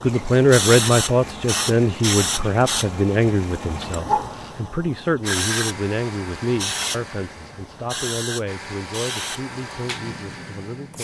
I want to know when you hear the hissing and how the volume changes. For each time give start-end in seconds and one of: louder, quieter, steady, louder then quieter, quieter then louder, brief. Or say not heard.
0.0-10.9 quieter.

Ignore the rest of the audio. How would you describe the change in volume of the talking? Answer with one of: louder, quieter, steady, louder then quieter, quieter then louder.
quieter.